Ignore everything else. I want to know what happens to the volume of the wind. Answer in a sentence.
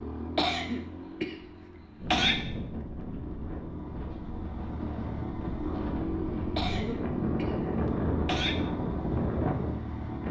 The volume of the wind goes up.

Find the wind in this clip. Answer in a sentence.
You can hear the wind from 1.9 to 10.2 s.